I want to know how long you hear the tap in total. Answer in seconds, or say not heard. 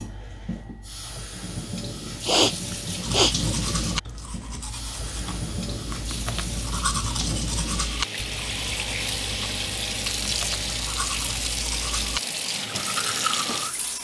14 s.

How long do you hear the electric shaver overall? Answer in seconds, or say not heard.
not heard.